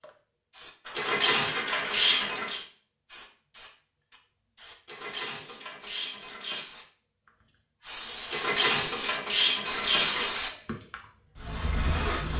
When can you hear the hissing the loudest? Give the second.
10 s.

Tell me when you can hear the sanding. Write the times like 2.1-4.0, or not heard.
0.8-2.4.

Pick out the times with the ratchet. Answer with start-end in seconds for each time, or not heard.
0.9-2.6, 4.8-6.7, 8.3-10.4.